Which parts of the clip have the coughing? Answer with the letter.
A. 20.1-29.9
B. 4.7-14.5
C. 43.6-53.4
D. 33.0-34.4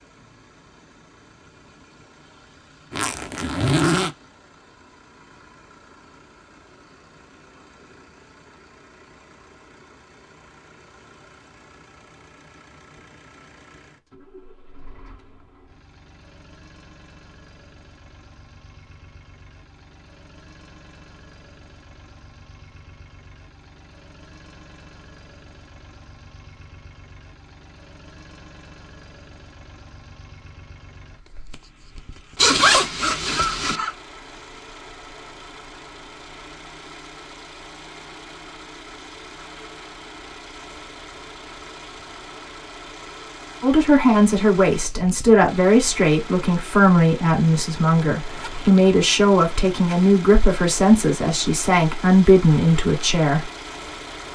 D.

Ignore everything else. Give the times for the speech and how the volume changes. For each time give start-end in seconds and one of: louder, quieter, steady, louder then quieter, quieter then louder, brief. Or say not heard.
43.6-53.4 steady.